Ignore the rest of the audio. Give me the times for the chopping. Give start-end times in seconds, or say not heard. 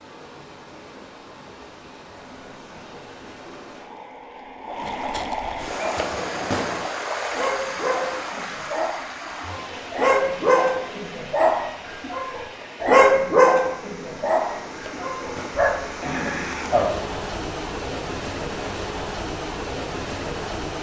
6.0-6.8, 14.8-15.7.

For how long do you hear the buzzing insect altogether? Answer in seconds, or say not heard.
not heard.